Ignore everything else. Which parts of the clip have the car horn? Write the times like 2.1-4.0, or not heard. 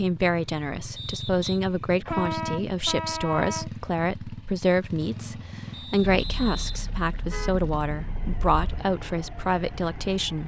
2.0-3.7, 6.1-8.8.